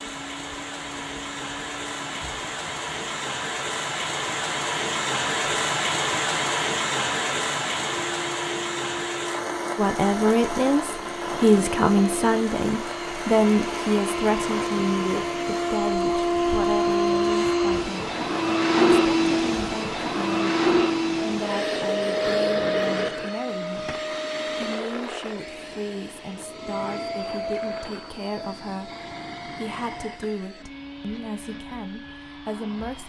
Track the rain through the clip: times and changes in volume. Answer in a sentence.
The rain can be heard from 0.0 to 17.6 s, getting louder then quieter.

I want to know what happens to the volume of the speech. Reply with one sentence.
The volume of the speech goes down.